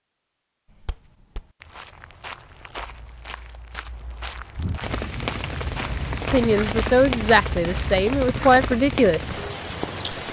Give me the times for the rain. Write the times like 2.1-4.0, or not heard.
4.8-10.2.